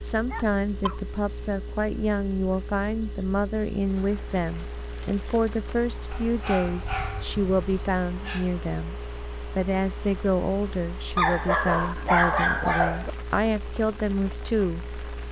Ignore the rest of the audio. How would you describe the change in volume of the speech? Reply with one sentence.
The volume of the speech stays about the same.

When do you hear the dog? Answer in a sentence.
You can hear the dog from 0.3 to 1.0 s, from 6.1 to 8.4 s and from 11.2 to 13.1 s.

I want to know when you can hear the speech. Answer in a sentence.
You can hear the speech from 0.0 to 15.2 s.